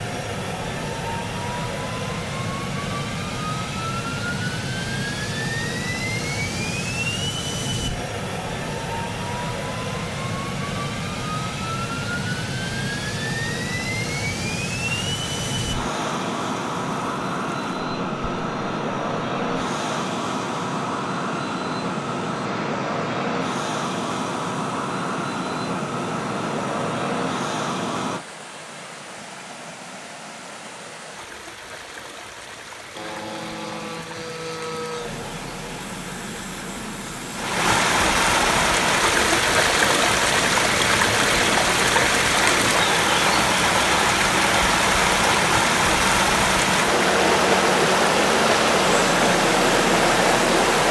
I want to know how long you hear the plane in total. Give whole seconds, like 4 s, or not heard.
46 s.